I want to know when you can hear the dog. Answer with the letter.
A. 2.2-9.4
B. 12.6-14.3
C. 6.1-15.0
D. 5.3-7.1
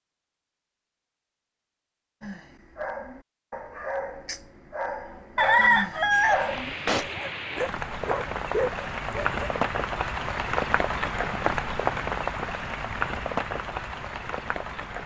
A.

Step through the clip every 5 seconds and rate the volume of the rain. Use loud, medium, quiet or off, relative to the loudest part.
off, loud, loud.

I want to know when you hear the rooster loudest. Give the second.
6 s.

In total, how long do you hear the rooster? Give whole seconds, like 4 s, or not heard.
2 s.